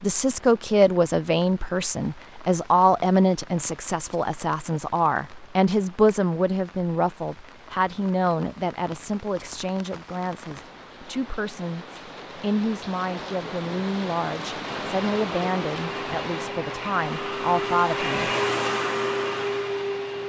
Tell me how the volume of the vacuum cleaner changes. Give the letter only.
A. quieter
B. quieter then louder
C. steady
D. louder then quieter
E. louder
E.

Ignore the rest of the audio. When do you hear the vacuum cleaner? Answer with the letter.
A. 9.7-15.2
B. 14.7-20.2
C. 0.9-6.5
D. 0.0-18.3
B.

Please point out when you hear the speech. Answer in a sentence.
The speech can be heard from 0.0 to 18.3 s.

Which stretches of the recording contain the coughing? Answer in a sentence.
You can't hear the coughing here.